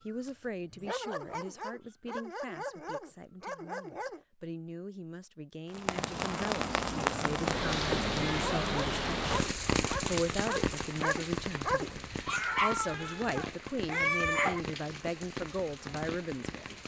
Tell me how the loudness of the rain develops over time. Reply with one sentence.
The loudness of the rain goes down.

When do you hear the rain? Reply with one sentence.
The rain can be heard from 5.7 to 16.8 s.